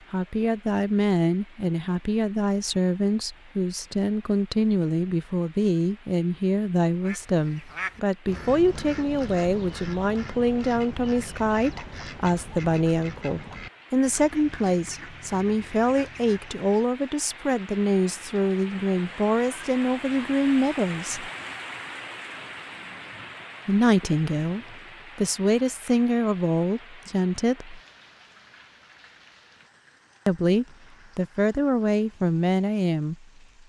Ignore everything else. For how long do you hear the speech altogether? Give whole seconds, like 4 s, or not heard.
28 s.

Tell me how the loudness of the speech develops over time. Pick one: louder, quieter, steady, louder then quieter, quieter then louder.
steady.